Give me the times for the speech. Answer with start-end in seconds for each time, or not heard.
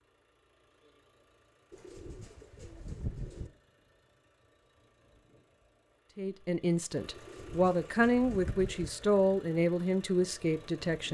6.2-11.1.